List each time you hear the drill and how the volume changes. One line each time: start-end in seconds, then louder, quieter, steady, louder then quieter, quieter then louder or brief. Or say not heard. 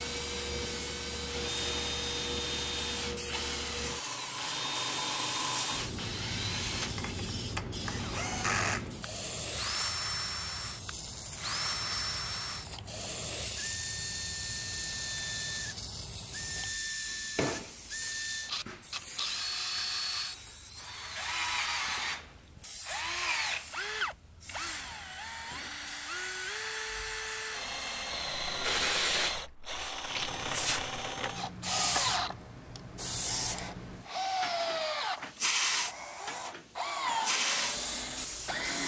0.0-38.8 steady.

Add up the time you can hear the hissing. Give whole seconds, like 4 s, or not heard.
39 s.